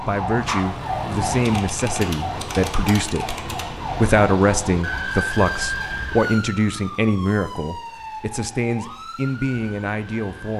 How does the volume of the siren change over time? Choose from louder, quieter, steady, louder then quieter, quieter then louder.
quieter.